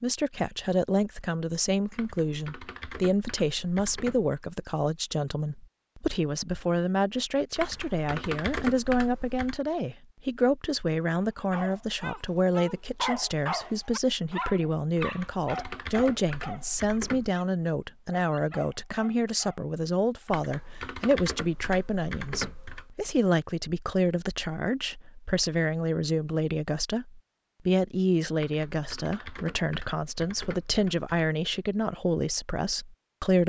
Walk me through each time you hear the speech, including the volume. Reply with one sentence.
You can hear the speech from 0.0 to 33.4 s, at a steady volume.